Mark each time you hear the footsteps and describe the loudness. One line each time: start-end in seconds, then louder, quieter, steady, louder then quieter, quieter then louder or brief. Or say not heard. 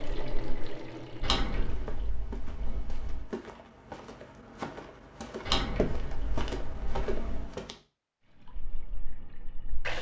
1.6-7.8 louder.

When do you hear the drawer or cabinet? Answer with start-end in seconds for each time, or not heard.
1.2-3.2, 5.5-7.5.